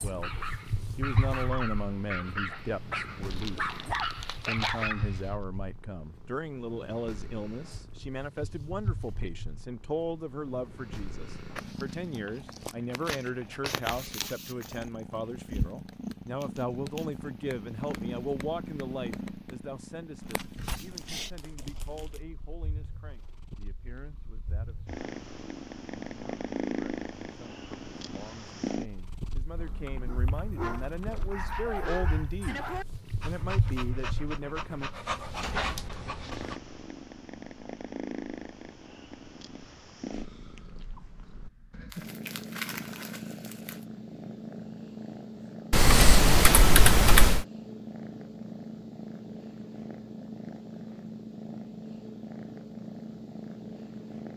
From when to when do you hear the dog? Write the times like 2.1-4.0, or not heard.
0.0-5.3, 30.1-36.6.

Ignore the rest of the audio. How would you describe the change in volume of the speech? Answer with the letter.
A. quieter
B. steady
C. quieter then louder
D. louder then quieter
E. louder
C.